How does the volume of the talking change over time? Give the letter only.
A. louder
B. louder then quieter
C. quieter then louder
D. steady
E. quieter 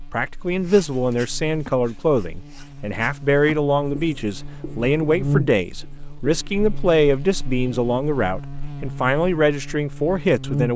D.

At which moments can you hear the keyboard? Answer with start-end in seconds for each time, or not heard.
not heard.